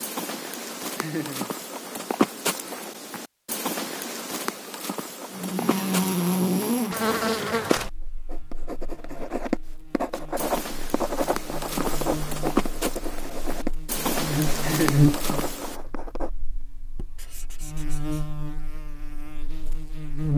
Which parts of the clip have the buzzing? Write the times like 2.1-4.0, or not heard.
5.3-20.3.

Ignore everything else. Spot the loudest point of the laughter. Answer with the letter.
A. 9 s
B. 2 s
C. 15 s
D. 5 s
C.